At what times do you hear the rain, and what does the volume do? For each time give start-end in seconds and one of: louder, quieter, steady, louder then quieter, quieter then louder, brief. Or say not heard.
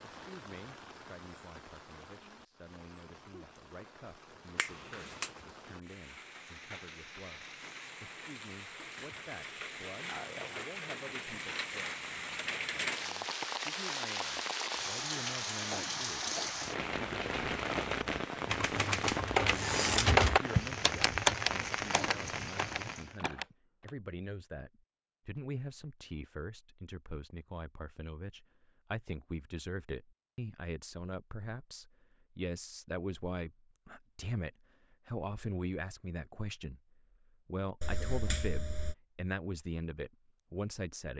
0.0-23.2 louder.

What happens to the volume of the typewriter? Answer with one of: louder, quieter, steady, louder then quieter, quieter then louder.
louder then quieter.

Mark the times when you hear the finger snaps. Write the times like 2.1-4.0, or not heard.
4.5-5.3, 37.8-39.0.